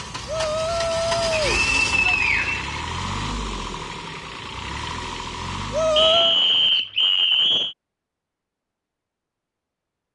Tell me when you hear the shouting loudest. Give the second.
6 s.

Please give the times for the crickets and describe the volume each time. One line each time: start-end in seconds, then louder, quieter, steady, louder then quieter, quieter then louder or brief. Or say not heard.
not heard.